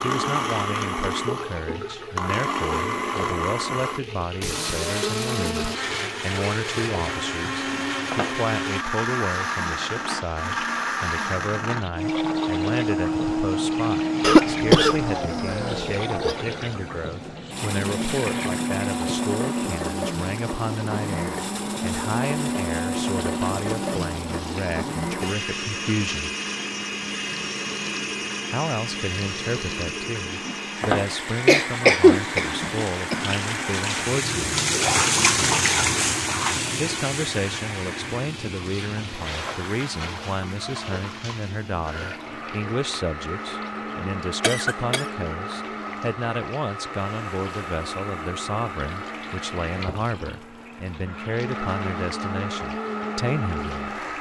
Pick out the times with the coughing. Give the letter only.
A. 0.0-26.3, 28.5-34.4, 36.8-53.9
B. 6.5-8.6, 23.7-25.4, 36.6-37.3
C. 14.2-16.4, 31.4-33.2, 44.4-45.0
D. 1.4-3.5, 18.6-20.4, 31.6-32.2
C.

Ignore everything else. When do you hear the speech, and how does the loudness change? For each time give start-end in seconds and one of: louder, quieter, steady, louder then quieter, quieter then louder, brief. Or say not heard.
0.0-26.3 steady
28.5-34.4 steady
36.8-53.9 steady.